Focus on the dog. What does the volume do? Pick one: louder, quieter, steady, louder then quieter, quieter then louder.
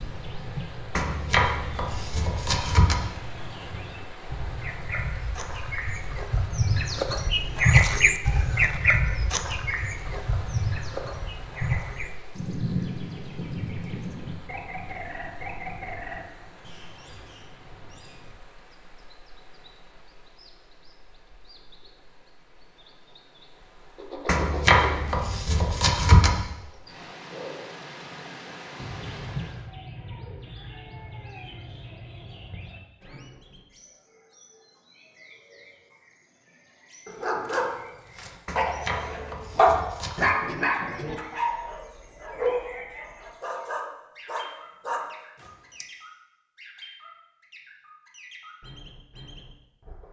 louder then quieter.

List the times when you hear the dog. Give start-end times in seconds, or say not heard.
37.0-45.9.